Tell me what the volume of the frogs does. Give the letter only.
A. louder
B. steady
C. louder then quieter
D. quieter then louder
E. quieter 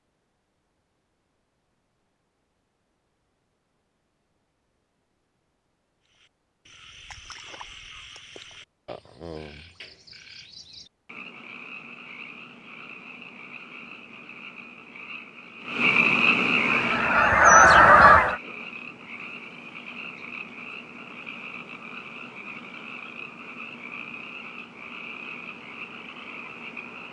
C.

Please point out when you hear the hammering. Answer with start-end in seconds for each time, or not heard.
not heard.